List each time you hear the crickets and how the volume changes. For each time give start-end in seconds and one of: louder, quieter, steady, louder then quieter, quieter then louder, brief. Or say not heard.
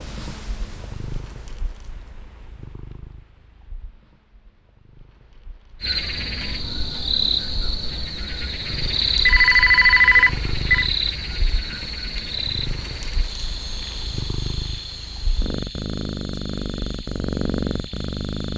5.8-18.5 quieter.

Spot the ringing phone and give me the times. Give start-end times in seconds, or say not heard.
9.2-10.9.